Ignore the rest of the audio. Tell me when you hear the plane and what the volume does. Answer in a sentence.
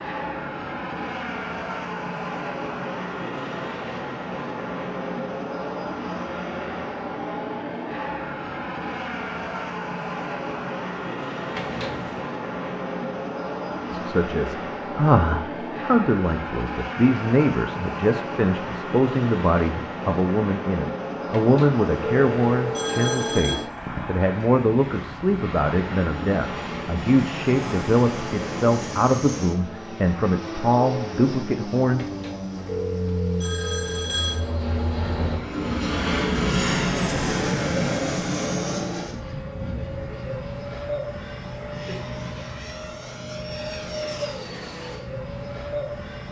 You can hear the plane from 0.0 to 46.2 s, at a steady volume.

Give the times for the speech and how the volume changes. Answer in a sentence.
You can hear the speech from 13.9 to 32.1 s, at a steady volume.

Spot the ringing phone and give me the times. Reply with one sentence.
You can hear the ringing phone from 11.6 to 12.2 s, from 21.3 to 23.6 s and from 31.9 to 34.5 s.